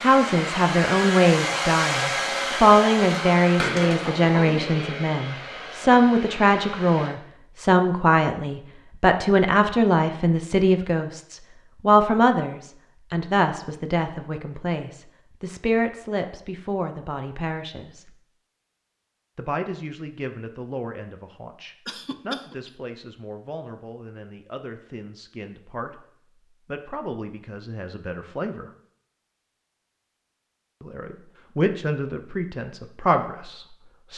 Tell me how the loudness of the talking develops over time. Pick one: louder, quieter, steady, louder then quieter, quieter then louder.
quieter then louder.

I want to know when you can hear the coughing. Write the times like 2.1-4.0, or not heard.
21.9-22.8.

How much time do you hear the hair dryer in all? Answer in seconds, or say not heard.
7 s.